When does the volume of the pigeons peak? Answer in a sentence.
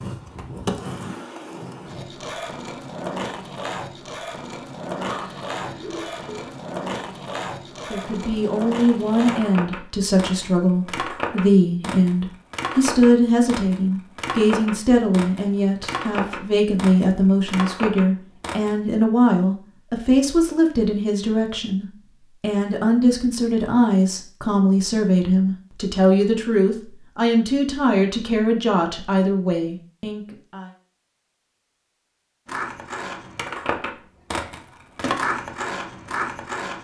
The loudest moment of the pigeons is at 5 seconds.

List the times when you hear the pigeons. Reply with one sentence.
You can hear the pigeons from 5.0 to 6.5 s.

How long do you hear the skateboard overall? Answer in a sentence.
The skateboard can be heard for 23 seconds in total.